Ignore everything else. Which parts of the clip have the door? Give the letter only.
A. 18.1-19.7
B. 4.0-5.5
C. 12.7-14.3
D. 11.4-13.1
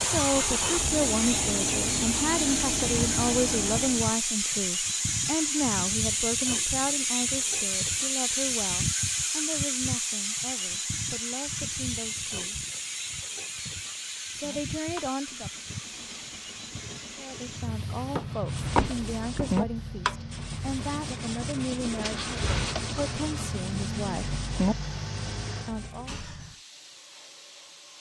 A.